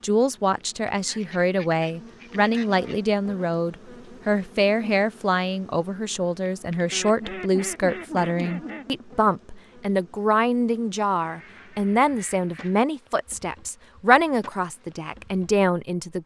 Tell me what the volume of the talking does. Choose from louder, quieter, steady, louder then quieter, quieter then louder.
steady.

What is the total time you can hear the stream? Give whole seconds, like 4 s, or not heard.
not heard.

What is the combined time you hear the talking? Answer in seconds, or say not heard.
16 s.